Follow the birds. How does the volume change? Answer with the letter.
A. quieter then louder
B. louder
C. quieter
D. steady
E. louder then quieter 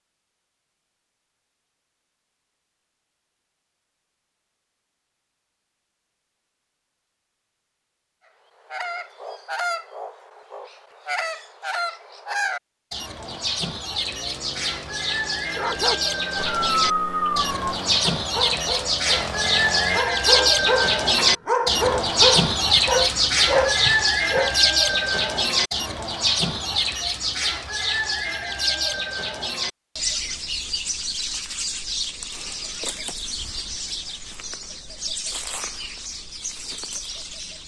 E.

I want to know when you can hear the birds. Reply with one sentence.
You can hear the birds from 8.7 to 37.6 s.